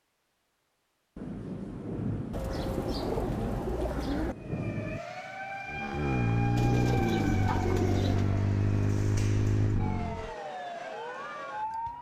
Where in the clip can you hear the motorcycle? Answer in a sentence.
The motorcycle can be heard from 5.7 to 10.3 s.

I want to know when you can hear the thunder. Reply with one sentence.
You can hear the thunder from 1.1 to 5.0 s.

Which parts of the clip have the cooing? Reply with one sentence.
You can hear the cooing from 2.3 to 4.3 s and from 6.5 to 8.3 s.